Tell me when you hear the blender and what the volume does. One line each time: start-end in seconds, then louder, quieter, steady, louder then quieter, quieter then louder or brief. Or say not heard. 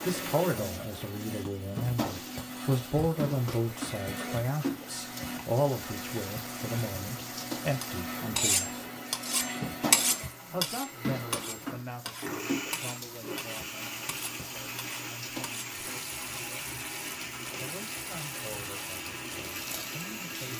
0.0-20.5 steady.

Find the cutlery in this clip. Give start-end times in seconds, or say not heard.
7.8-15.8.